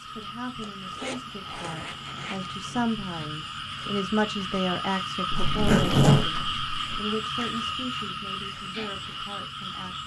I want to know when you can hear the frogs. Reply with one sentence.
You can hear the frogs from 0.0 to 10.0 s.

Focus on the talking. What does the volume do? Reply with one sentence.
The volume of the talking goes up, then down.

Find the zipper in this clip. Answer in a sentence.
The zipper can be heard from 0.6 to 2.5 s and from 5.3 to 7.0 s.